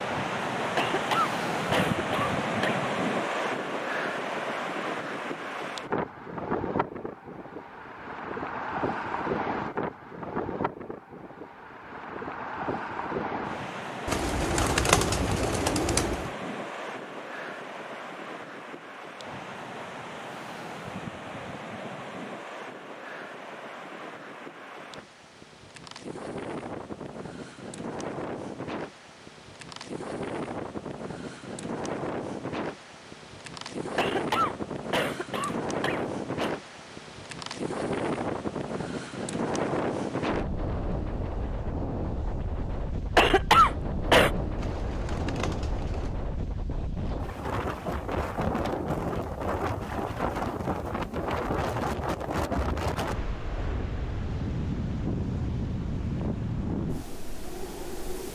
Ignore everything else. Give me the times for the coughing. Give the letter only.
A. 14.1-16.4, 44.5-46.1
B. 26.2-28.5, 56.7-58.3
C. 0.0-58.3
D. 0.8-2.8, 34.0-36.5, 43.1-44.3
D.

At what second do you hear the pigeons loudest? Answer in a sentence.
The loudest moment of the pigeons is at 15 seconds.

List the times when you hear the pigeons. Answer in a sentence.
The pigeons can be heard from 14.1 to 16.4 s and from 44.5 to 46.1 s.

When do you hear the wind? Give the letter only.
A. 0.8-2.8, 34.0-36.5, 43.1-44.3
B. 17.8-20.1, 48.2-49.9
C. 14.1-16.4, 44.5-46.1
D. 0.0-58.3
D.